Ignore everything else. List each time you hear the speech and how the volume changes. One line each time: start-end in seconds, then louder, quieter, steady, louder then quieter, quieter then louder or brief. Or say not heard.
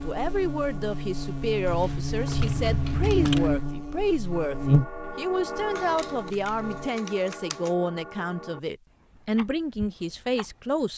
0.0-10.9 steady.